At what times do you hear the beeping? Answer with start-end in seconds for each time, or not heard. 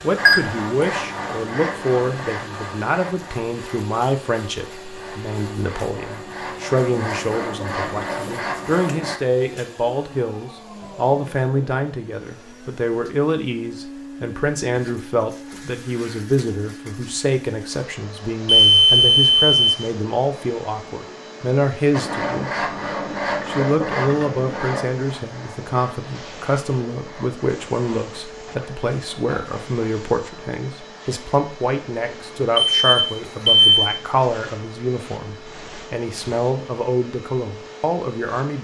0.2-0.8, 18.4-19.7, 32.5-33.9.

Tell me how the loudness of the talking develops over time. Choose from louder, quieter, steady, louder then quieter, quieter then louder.
steady.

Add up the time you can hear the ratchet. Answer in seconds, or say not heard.
not heard.